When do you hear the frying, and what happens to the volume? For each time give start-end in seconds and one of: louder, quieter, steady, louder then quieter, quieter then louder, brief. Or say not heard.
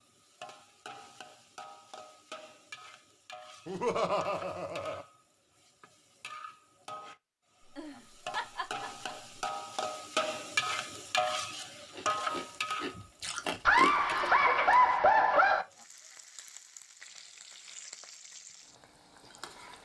0.0-19.8 louder then quieter.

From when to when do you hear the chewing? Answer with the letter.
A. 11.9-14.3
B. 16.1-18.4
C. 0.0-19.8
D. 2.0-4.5
A.